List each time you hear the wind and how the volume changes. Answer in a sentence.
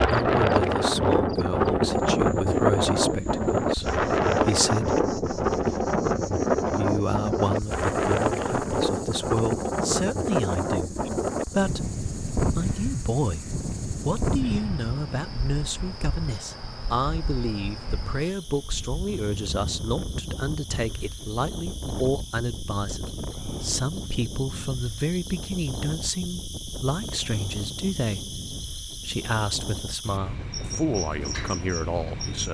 You can hear the wind from 0.0 to 32.4 s, getting quieter.